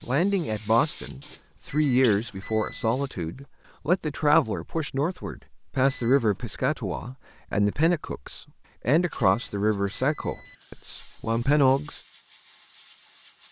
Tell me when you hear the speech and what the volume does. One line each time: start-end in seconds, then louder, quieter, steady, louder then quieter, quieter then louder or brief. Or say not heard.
0.0-12.0 steady.